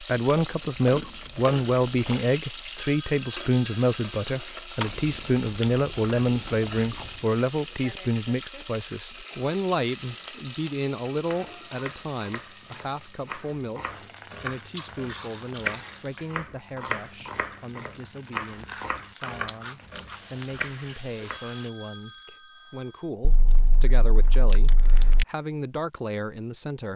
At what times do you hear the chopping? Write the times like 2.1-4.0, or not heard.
11.1-21.4.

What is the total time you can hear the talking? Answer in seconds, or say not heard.
27 s.